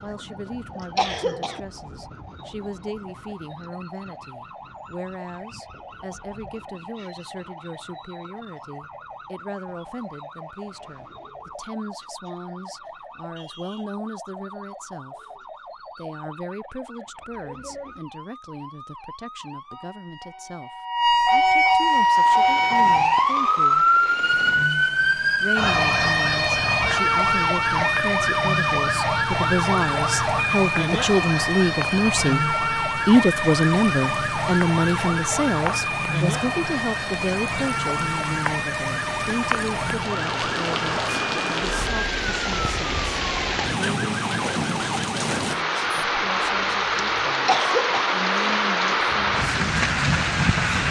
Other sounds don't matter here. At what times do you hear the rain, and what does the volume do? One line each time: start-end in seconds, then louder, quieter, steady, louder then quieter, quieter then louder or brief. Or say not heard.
21.7-50.8 louder.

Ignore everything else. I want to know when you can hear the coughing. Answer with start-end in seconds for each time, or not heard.
0.8-1.6, 47.2-48.1.